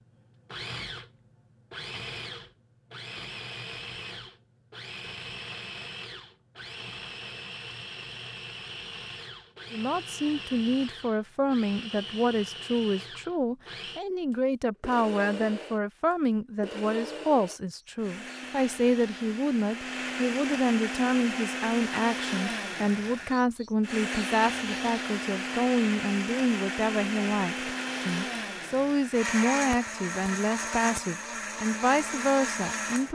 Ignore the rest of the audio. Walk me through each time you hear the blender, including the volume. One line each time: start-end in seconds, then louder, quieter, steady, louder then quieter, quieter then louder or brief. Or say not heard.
0.0-33.1 louder.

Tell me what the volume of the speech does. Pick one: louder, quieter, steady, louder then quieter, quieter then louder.
steady.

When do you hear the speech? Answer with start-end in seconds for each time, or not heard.
9.7-33.1.